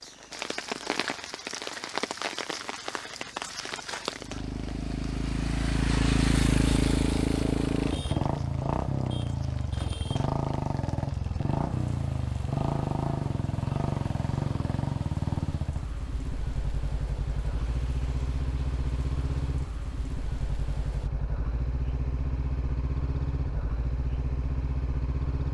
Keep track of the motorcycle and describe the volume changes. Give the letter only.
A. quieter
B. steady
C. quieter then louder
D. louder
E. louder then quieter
E.